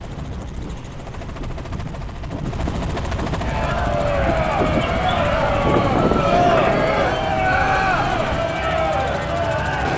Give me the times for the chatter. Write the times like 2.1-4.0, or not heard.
3.4-9.9.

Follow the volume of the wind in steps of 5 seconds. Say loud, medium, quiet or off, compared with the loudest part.
medium, loud.